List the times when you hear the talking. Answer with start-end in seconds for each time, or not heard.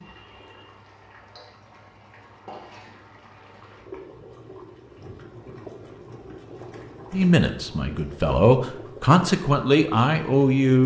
7.1-10.8.